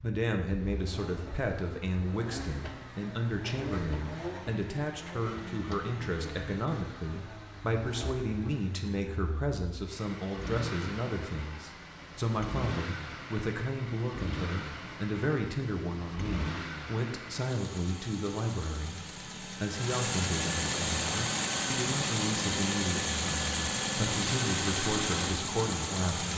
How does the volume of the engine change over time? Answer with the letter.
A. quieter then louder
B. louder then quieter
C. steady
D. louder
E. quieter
D.